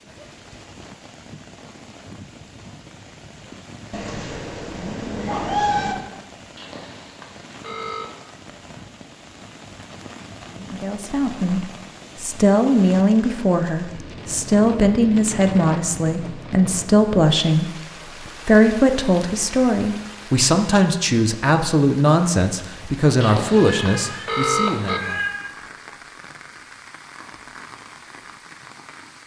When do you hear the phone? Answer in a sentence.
You can hear the phone from 6.5 to 8.1 s and from 23.2 to 25.0 s.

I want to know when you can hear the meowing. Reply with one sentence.
The meowing can be heard from 3.9 to 6.0 s and from 23.6 to 25.4 s.